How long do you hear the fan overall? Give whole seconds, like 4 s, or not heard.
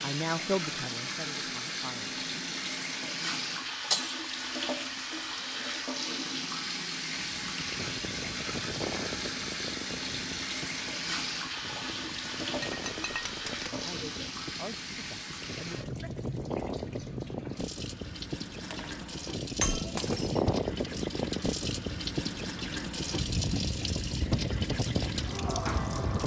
19 s.